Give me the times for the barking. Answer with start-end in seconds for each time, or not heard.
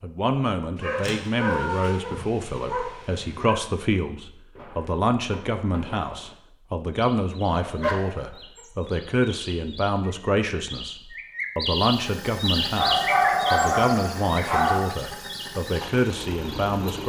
0.8-3.6, 7.6-8.7, 12.8-14.8.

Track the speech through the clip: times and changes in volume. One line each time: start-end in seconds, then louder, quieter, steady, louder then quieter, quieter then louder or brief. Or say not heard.
0.0-17.0 steady.